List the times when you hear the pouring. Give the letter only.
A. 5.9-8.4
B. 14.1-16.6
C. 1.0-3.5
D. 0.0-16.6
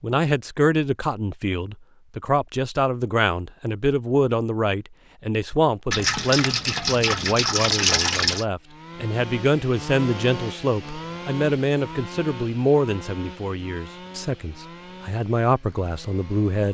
A.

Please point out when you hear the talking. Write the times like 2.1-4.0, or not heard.
0.0-16.6.